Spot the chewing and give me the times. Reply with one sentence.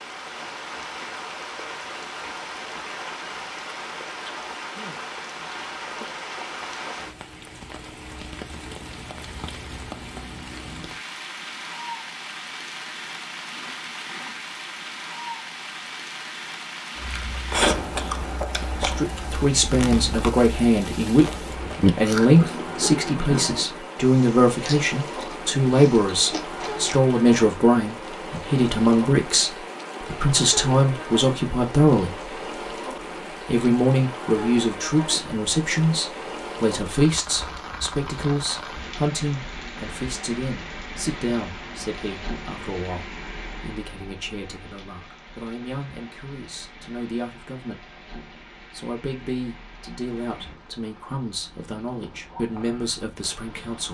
You can hear the chewing from 16.9 to 27.0 s.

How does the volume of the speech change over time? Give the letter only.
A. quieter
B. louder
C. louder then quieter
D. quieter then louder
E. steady
A.